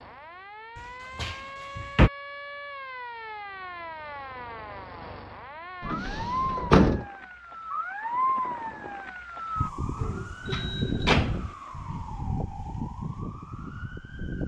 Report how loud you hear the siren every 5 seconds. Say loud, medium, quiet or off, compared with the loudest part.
medium, loud, loud.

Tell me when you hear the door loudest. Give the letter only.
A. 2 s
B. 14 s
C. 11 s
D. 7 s
D.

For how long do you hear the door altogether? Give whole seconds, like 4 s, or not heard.
4 s.